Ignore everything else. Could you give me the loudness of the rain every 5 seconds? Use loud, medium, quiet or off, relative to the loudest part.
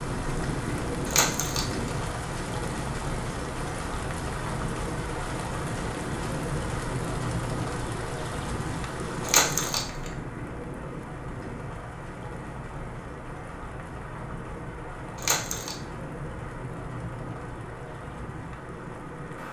loud, loud, medium, medium.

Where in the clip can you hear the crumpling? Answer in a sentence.
The crumpling can be heard from 1.1 to 1.9 s, from 9.2 to 10.1 s and from 15.2 to 15.8 s.